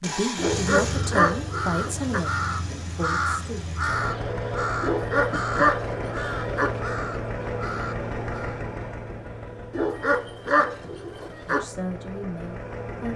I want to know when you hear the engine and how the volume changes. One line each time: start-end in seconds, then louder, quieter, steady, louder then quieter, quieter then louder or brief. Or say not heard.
0.0-13.1 quieter.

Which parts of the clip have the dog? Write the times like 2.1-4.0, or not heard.
0.3-2.2, 4.8-6.8, 9.7-11.7.